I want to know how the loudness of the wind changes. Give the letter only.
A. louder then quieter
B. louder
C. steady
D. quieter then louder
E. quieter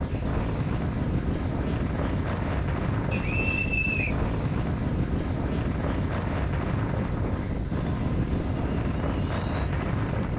C.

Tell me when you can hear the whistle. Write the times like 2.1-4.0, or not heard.
3.1-4.2.